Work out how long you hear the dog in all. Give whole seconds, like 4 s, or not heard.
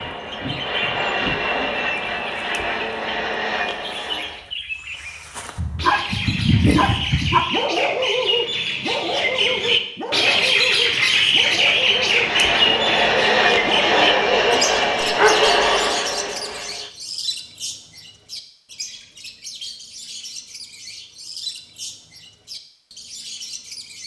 10 s.